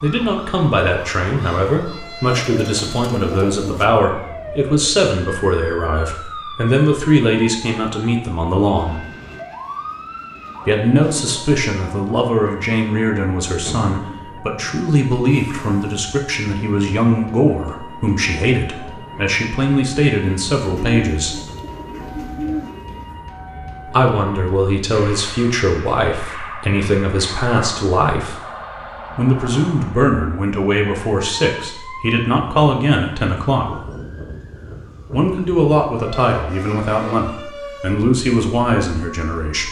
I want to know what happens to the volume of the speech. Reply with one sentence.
The loudness of the speech stays about the same.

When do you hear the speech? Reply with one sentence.
The speech can be heard from 0.0 to 9.0 s, from 10.7 to 21.4 s, from 23.9 to 28.4 s, from 29.1 to 33.8 s and from 35.1 to 39.6 s.